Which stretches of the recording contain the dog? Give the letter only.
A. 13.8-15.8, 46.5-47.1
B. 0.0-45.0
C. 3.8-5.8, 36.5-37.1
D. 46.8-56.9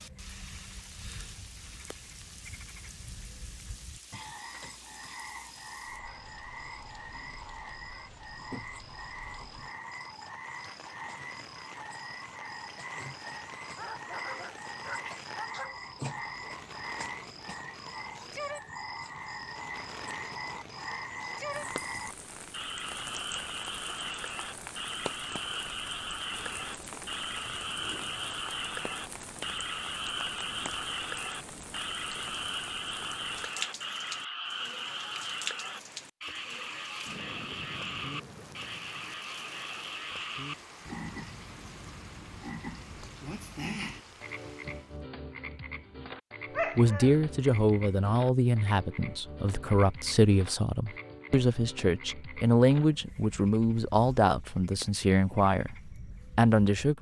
A.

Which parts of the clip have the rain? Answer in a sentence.
You can hear the rain from 0.0 to 45.0 s.